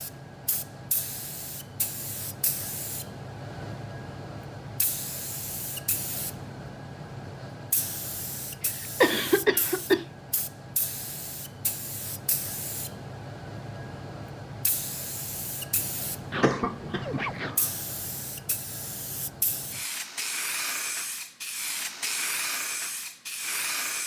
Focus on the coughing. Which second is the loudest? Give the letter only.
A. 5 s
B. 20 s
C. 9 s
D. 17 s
C.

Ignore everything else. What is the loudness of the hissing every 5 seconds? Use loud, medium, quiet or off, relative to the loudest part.
medium, medium, medium, medium, loud.